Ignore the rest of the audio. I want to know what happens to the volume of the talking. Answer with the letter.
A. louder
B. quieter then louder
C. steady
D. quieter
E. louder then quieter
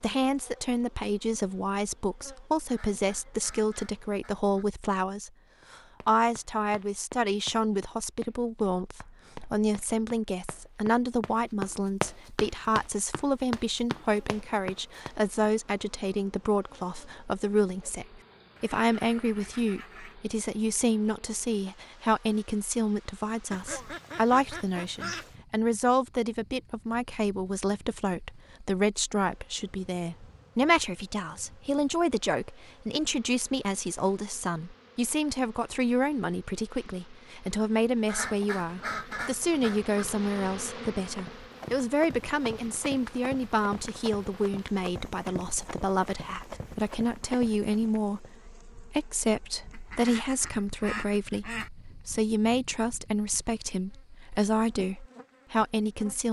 C.